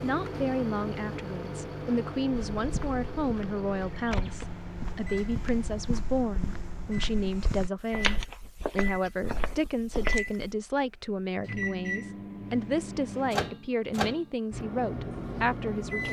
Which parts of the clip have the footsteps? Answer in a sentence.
You can hear the footsteps from 2.4 to 10.6 s.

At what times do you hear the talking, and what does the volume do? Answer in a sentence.
You can hear the talking from 0.0 to 16.0 s, at a steady volume.